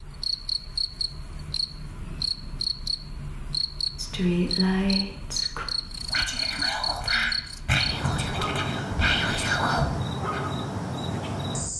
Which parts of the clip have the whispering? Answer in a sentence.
The whispering can be heard from 4.0 to 10.4 s.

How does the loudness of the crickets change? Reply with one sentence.
The volume of the crickets stays about the same.